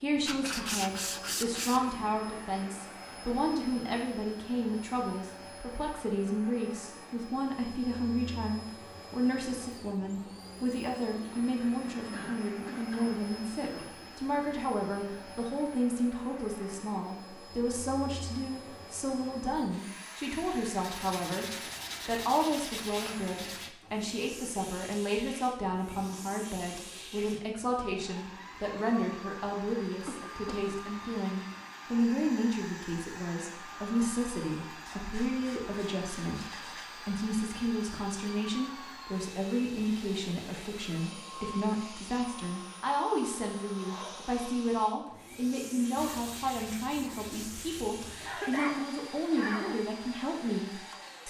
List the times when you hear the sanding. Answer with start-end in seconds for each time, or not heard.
0.2-1.9, 20.8-23.8, 34.9-36.9, 46.0-48.4.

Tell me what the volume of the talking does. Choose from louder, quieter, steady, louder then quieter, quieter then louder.
steady.